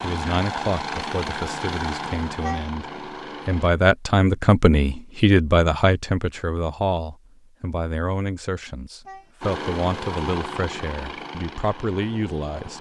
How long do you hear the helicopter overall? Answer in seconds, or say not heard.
7 s.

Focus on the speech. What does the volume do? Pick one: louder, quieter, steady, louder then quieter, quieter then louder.
louder then quieter.